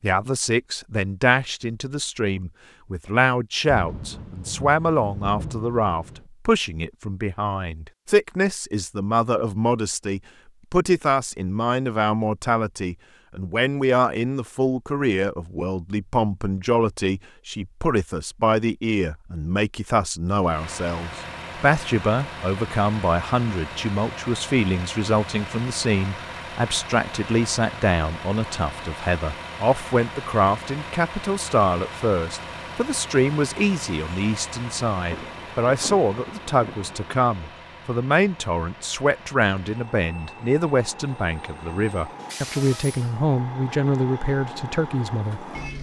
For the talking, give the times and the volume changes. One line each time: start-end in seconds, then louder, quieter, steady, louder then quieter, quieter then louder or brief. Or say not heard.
0.0-45.5 steady.